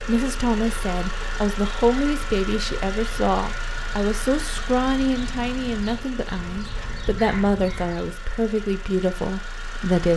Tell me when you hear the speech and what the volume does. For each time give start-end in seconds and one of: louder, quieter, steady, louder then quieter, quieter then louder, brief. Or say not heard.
0.0-10.1 steady.